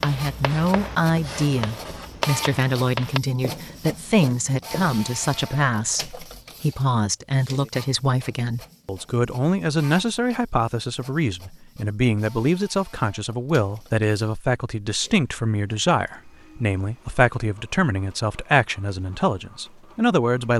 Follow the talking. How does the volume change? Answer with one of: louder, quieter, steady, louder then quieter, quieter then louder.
steady.